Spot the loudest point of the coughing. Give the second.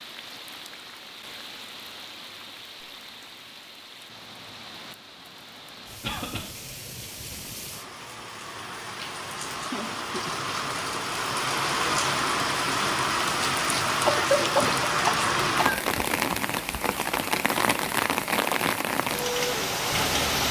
14 s.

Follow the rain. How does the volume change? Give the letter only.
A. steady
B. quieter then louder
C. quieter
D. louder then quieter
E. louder
E.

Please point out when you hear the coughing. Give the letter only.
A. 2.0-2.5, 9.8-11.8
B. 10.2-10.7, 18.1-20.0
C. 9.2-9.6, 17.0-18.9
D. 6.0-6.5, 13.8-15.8
D.